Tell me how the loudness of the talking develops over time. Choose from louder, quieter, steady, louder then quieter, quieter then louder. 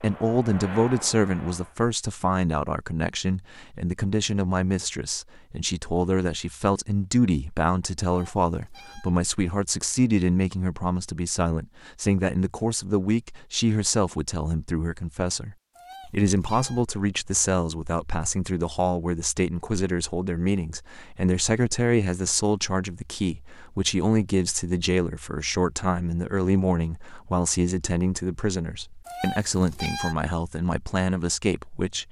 steady.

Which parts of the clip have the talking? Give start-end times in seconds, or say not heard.
0.0-32.0.